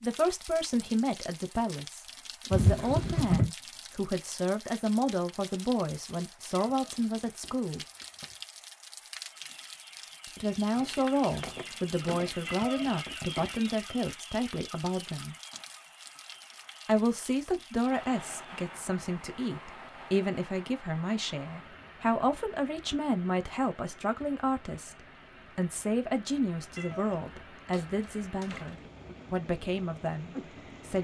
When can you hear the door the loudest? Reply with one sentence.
The volume of the door peaks at 3 seconds.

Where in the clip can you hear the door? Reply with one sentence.
You can hear the door from 2.5 to 3.5 s, from 10.8 to 12.6 s and from 27.7 to 28.9 s.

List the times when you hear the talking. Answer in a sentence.
The talking can be heard from 0.0 to 7.8 s, from 10.2 to 15.3 s and from 16.9 to 30.9 s.